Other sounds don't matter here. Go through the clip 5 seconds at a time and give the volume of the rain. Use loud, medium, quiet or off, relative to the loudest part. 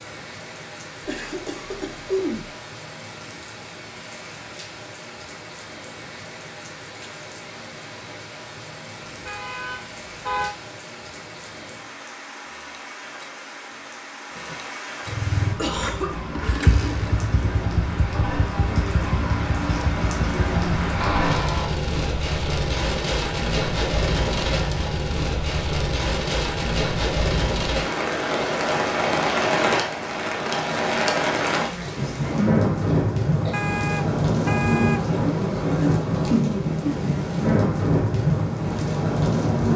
quiet, quiet, quiet, medium, loud, loud, loud, loud.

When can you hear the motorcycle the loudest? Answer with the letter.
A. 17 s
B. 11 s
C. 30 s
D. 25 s
A.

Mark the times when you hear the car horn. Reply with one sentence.
The car horn can be heard from 9.1 to 10.6 s, from 21.0 to 21.9 s and from 33.5 to 35.0 s.